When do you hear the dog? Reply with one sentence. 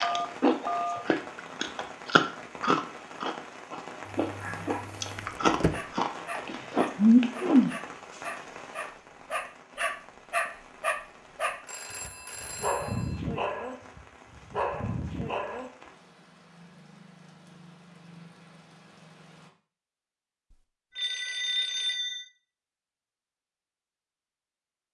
The dog can be heard from 4.0 to 15.7 s.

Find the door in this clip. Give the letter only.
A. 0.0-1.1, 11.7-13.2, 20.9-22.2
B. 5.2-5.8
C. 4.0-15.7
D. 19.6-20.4
B.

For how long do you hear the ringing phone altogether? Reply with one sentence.
You can hear the ringing phone for 4 seconds altogether.